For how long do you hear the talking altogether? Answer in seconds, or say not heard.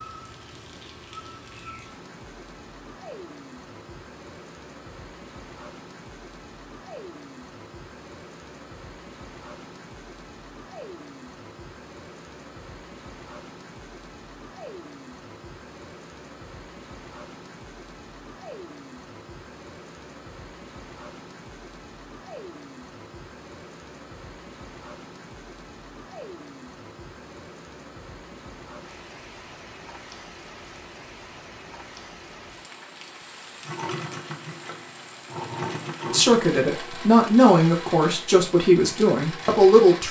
4 s.